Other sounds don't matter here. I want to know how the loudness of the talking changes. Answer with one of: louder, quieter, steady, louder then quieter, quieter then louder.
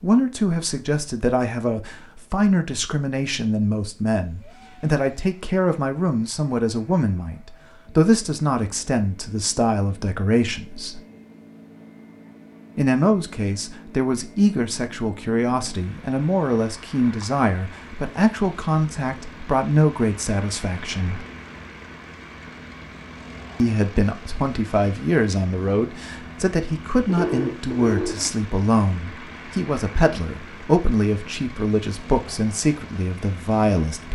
steady.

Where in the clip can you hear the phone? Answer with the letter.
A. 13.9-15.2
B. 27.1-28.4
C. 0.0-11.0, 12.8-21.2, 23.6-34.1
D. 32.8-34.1
B.